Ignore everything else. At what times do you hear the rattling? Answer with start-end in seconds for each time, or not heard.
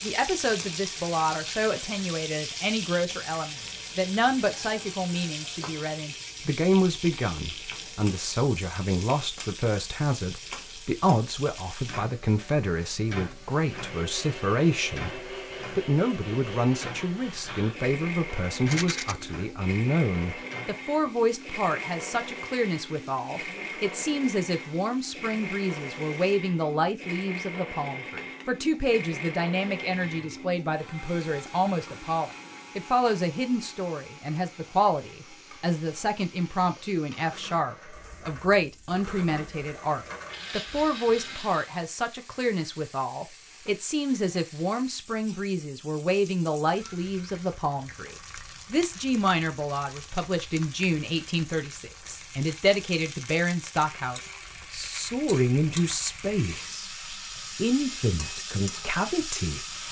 18.6-19.1.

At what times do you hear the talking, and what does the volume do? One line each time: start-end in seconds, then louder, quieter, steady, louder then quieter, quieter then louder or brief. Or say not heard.
0.0-59.6 steady.